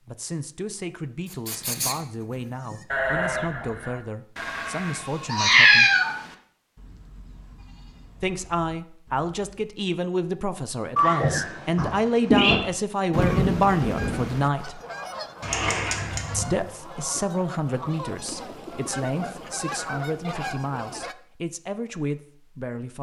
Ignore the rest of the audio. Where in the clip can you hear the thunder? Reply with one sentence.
The thunder can be heard from 13.1 to 14.5 s.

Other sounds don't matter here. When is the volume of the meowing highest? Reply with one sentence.
The volume of the meowing peaks at 6 seconds.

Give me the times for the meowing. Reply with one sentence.
You can hear the meowing from 5.2 to 6.2 s, from 10.9 to 12.6 s and from 15.4 to 16.6 s.